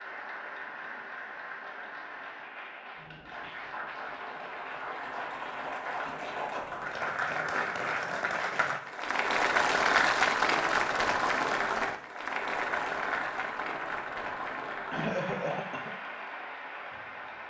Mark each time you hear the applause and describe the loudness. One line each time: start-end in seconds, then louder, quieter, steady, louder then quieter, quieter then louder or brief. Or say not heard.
0.0-17.4 louder then quieter.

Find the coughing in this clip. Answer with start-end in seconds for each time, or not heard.
14.9-15.9.